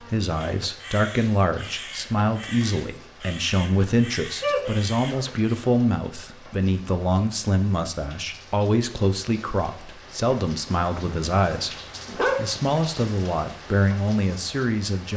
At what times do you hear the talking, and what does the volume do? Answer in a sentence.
You can hear the talking from 0.0 to 15.1 s, at a steady volume.